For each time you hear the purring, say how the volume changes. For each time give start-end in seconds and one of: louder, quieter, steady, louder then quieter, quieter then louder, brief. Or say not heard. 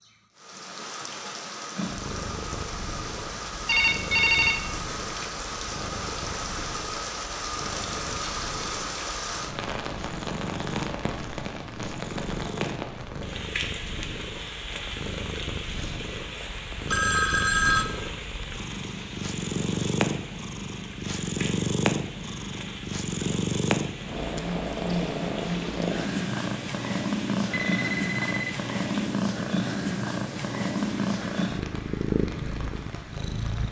1.8-33.6 louder.